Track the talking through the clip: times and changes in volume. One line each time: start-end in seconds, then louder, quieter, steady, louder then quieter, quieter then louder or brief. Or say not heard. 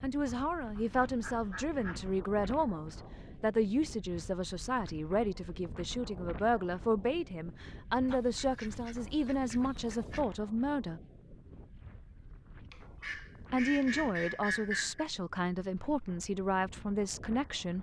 0.0-11.0 steady
13.5-17.7 steady.